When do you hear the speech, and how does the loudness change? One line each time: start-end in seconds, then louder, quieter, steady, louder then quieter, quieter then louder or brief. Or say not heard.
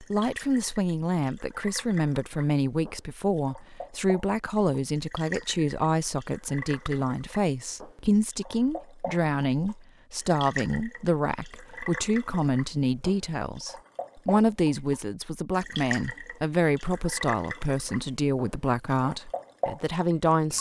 0.0-20.5 steady.